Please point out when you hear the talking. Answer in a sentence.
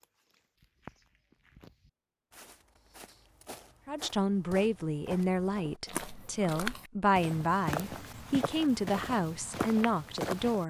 The talking can be heard from 3.9 to 10.6 s.